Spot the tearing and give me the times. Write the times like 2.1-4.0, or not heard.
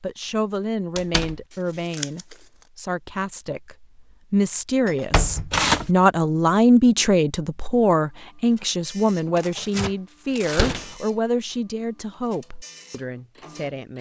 1.9-2.4, 5.5-5.9, 9.3-10.8.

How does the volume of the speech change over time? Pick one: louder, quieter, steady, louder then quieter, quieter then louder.
louder then quieter.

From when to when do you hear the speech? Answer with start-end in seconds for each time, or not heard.
0.0-13.9.